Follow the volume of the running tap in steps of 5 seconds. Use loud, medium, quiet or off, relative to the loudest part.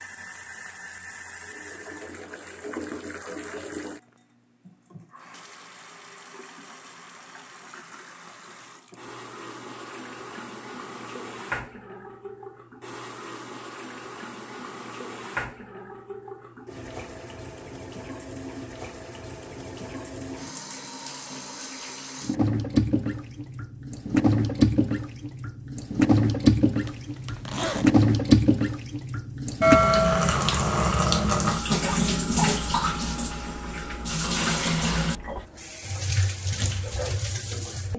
quiet, quiet, quiet, quiet, medium, loud, loud, medium.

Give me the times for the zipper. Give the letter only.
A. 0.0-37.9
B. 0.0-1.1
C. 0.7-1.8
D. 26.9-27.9
D.